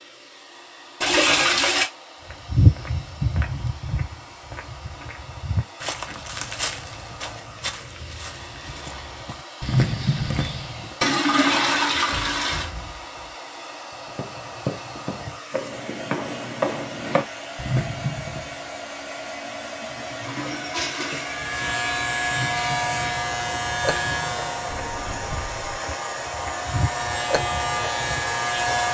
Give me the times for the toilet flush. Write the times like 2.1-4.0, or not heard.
1.0-1.9, 11.0-12.7, 19.9-21.4.